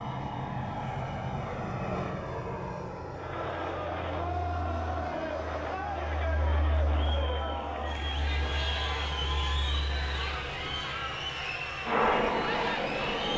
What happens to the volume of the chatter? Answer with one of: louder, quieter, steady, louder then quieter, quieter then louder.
steady.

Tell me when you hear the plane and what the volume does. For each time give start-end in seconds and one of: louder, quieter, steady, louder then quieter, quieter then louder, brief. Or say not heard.
0.0-13.3 quieter then louder.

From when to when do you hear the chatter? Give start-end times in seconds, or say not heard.
3.1-13.3.